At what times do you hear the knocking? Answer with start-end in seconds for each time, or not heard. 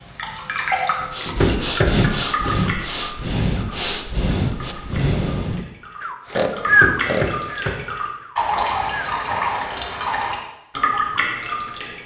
1.2-1.9, 6.7-7.8.